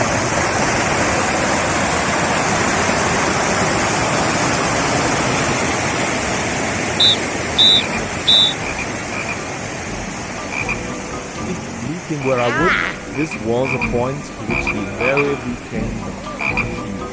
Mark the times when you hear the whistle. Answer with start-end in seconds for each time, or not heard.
7.0-8.6.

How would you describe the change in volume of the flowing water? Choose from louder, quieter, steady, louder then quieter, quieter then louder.
quieter.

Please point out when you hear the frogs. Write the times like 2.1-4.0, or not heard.
7.7-17.0.